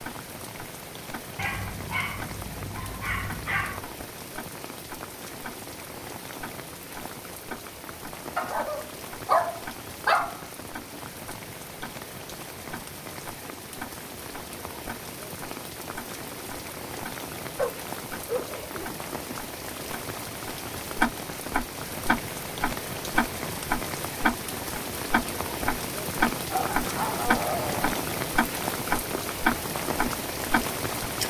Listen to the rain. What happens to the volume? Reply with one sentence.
The loudness of the rain goes up.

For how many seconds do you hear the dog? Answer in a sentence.
The dog can be heard for 8 seconds in total.